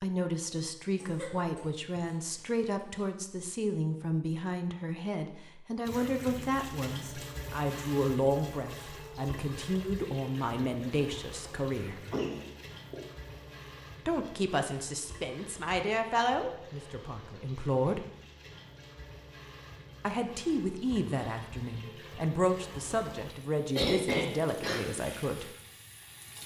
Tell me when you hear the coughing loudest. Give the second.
24 s.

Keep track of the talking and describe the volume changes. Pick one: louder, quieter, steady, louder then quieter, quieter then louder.
steady.